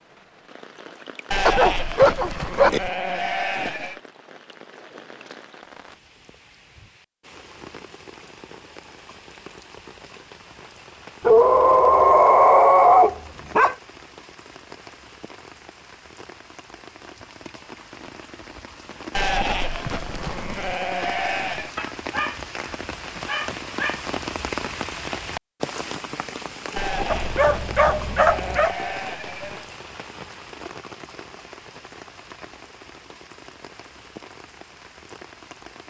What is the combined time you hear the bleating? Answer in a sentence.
You can hear the bleating for 8 seconds altogether.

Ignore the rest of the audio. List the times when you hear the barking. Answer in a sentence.
You can hear the barking from 1.4 to 2.8 s, from 11.2 to 13.8 s, from 21.8 to 24.0 s and from 27.1 to 28.8 s.